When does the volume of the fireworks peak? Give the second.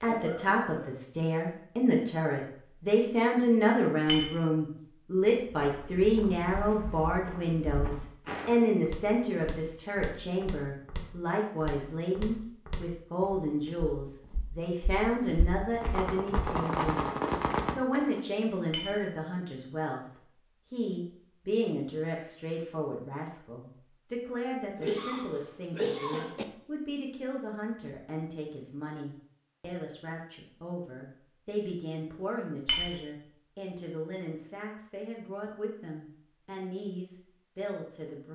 17 s.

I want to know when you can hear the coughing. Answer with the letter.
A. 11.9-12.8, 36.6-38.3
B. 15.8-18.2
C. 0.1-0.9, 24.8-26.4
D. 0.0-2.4
C.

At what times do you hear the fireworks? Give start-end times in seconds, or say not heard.
15.8-18.2.